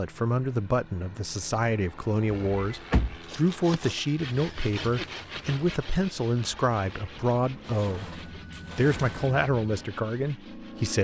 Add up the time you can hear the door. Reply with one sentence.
The door can be heard for 3 seconds in total.